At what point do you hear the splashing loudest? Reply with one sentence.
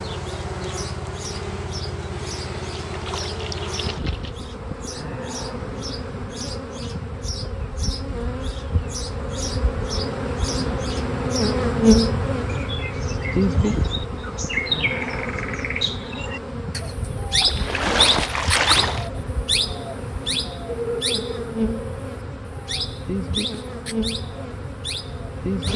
The loudest moment of the splashing is at 19 seconds.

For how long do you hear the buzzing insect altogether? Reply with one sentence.
The buzzing insect can be heard for 26 seconds in total.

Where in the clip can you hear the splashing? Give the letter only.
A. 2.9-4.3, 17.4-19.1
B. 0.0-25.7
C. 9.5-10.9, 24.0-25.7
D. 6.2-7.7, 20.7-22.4
A.